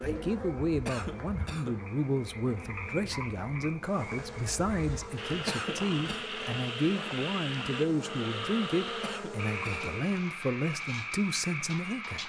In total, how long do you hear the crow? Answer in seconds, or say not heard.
not heard.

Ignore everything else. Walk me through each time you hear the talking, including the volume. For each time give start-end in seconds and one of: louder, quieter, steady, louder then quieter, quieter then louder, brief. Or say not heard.
0.0-12.2 steady.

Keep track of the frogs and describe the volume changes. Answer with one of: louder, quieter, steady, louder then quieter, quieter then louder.
louder.